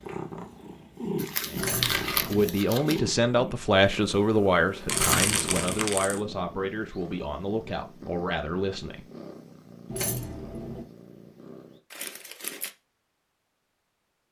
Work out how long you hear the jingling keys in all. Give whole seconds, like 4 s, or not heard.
3 s.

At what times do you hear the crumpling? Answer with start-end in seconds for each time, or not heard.
1.2-3.0, 4.8-6.2, 11.9-12.7.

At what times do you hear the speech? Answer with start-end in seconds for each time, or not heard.
1.4-9.1.